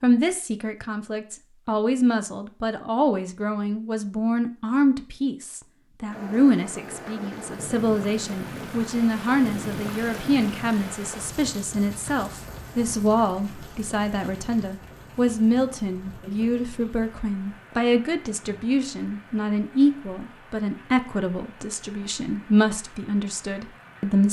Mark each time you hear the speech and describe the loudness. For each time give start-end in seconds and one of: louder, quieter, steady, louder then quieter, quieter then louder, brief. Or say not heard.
0.0-24.2 steady.